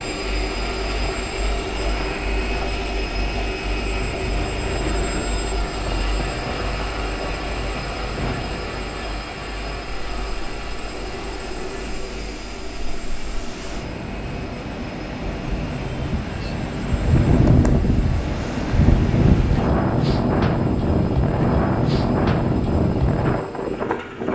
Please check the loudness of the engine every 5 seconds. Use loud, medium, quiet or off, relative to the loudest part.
loud, loud, medium, quiet, quiet.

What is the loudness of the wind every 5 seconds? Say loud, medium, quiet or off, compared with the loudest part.
quiet, quiet, quiet, loud, loud.